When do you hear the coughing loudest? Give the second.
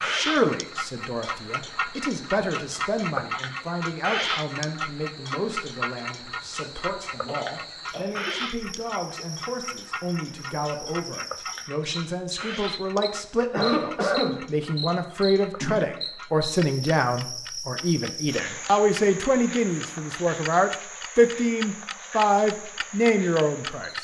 14 s.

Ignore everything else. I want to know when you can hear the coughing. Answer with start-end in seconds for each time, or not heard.
7.2-8.3, 13.4-14.4.